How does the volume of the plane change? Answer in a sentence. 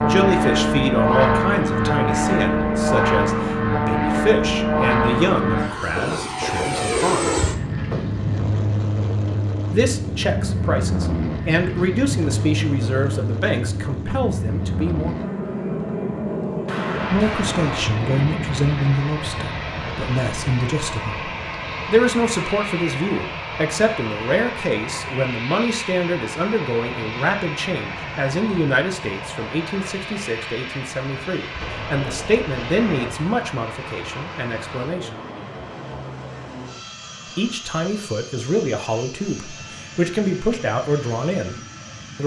The volume of the plane goes down.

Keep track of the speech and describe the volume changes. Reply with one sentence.
The volume of the speech stays about the same.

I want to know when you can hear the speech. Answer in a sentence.
You can hear the speech from 0.0 to 7.4 s, from 9.7 to 15.2 s, from 17.1 to 35.1 s and from 37.4 to 42.2 s.